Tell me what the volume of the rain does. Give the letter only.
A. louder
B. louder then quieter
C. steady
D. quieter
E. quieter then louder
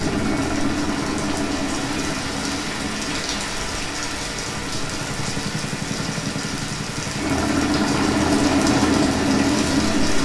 C.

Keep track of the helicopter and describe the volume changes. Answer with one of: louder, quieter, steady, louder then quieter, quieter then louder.
quieter then louder.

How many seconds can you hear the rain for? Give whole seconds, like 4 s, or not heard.
10 s.